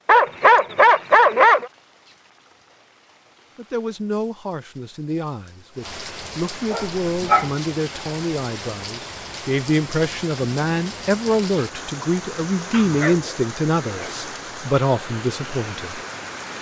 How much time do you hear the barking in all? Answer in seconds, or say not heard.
4 s.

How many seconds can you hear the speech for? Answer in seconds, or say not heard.
12 s.